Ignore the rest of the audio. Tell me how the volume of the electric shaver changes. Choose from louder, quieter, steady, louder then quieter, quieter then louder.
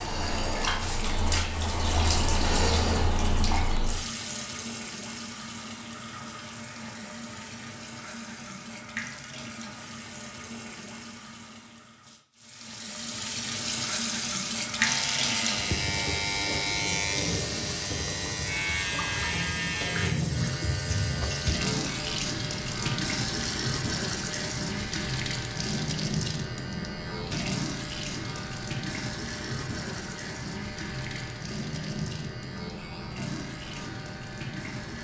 quieter.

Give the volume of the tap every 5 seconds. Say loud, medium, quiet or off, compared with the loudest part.
loud, medium, loud, loud, loud, loud, medium.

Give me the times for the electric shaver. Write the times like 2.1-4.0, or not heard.
14.8-34.9.